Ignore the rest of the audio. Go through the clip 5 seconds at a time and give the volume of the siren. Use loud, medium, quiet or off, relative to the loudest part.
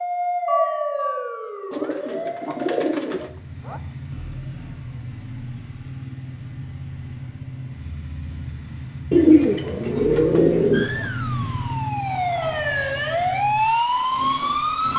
loud, off, loud.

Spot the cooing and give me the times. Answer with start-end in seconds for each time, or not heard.
1.7-3.3, 9.1-11.1.